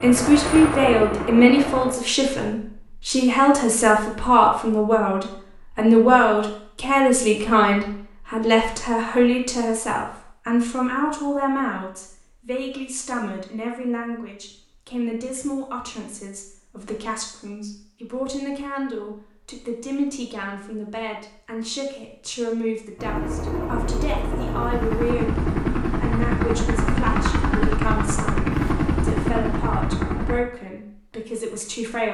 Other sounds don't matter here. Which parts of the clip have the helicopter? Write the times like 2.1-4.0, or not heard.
0.0-1.9, 22.9-30.4.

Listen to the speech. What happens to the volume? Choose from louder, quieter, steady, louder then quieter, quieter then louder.
quieter.